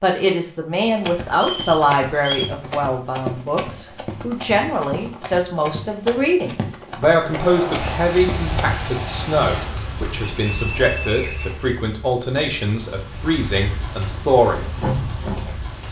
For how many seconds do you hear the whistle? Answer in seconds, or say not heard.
3 s.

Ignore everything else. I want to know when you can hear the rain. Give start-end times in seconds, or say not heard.
7.2-15.8.